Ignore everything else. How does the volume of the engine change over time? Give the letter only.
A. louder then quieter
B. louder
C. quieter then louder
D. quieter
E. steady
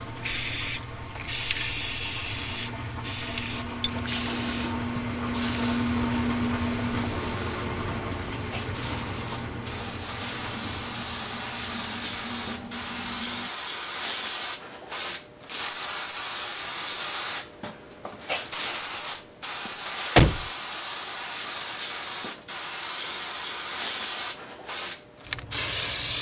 A.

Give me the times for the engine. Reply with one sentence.
The engine can be heard from 0.0 to 13.5 s.